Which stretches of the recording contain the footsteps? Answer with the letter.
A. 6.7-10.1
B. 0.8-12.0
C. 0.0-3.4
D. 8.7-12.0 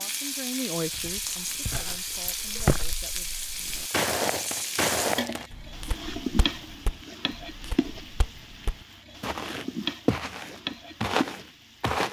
B.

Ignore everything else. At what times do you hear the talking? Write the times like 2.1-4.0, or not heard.
0.0-3.4.